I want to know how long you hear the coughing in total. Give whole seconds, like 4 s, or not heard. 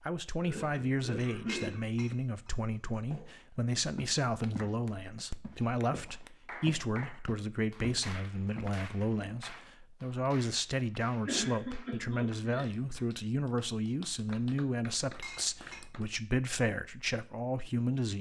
3 s.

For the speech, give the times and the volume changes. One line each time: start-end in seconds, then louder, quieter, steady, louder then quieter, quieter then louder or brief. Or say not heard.
0.0-18.1 steady.